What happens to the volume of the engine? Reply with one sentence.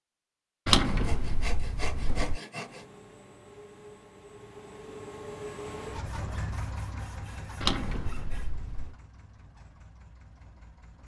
The loudness of the engine goes up, then down.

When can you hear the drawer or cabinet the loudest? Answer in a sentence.
The volume of the drawer or cabinet peaks at 1 second.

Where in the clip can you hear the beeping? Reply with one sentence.
You can't hear the beeping here.